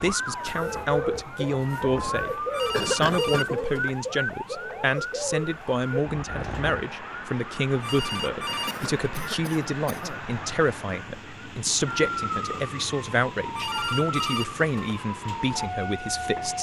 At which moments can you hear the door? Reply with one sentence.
The door can't be heard in this clip.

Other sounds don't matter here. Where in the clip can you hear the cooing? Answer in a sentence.
The cooing can be heard from 0.5 to 6.5 s.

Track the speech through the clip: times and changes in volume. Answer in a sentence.
You can hear the speech from 0.0 to 16.5 s, at a steady volume.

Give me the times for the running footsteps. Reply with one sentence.
The running footsteps can't be heard in this clip.